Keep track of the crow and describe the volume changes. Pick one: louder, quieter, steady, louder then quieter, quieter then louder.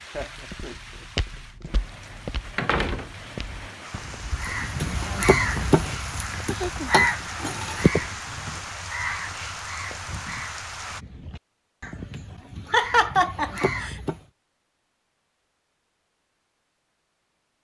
quieter then louder.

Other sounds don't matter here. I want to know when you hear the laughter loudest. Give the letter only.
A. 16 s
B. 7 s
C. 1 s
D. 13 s
D.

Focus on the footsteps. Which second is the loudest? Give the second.
1 s.